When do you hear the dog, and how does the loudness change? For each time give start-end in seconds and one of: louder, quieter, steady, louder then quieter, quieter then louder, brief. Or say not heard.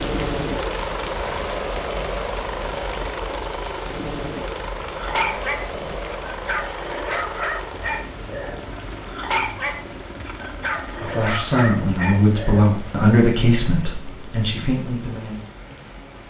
4.9-12.7 steady.